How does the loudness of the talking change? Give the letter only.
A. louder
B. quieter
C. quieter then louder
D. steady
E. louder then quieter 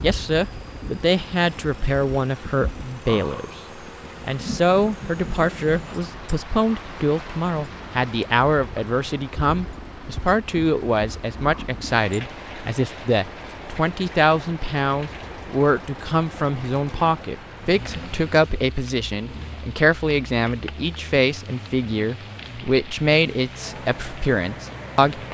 D.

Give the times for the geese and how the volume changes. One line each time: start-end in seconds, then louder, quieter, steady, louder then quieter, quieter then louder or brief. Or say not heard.
not heard.